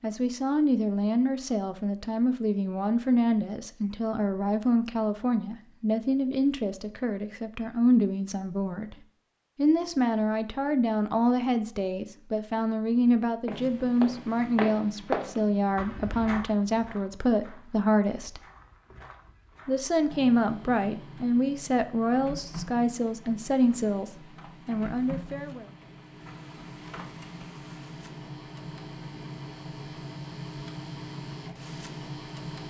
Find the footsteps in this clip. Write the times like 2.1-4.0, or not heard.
13.4-19.9.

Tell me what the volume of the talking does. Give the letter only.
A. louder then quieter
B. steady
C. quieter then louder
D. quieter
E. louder
B.